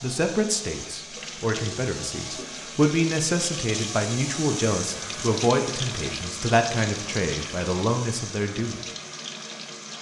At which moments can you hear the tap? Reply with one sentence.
You can hear the tap from 0.0 to 9.9 s.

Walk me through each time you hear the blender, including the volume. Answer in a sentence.
You can't hear the blender here.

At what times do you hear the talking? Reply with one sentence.
You can hear the talking from 0.0 to 8.8 s.